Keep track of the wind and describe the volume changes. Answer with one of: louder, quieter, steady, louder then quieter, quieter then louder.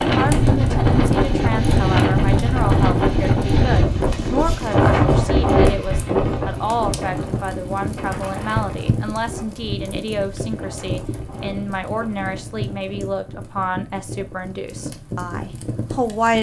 quieter.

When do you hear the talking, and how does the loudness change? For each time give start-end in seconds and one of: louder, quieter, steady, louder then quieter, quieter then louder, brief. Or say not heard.
0.1-16.3 steady.